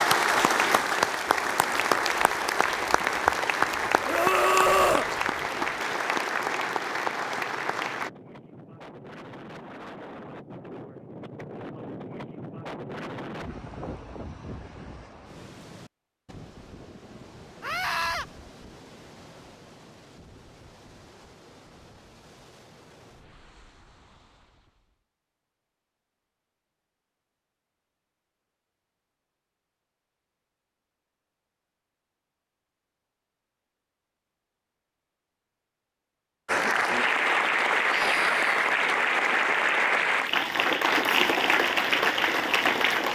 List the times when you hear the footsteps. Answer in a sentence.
The footsteps can't be heard in this clip.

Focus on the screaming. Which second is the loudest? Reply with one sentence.
The loudest moment of the screaming is at 5 seconds.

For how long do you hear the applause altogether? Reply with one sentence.
The applause can be heard for 15 seconds in total.